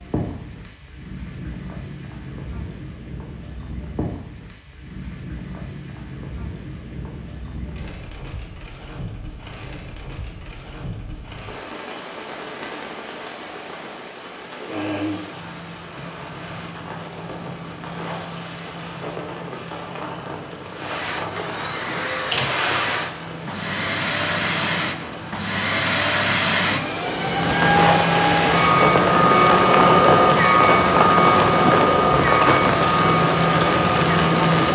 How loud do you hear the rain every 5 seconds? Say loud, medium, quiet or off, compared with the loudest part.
quiet, quiet, quiet, quiet, quiet, loud, loud.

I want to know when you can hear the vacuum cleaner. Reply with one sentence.
You can hear the vacuum cleaner from 20.8 to 34.7 s.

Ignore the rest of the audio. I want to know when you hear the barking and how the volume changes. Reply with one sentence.
The barking can't be heard in this clip.